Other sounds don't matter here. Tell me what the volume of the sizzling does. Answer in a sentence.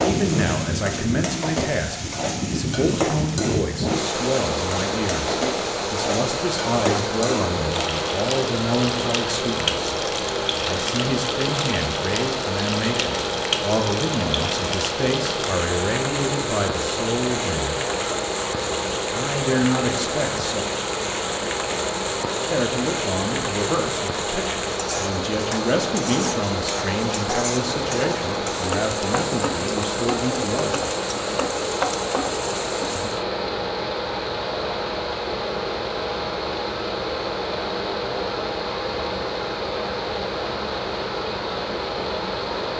The volume of the sizzling stays about the same.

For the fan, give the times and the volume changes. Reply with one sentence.
The fan can be heard from 0.0 to 42.7 s, at a steady volume.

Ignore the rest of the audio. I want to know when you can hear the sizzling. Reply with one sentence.
You can hear the sizzling from 0.0 to 33.2 s.